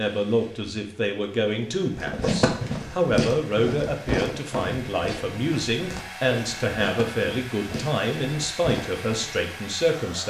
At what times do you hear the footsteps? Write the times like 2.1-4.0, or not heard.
1.9-9.4.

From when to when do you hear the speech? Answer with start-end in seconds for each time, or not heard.
0.0-10.2.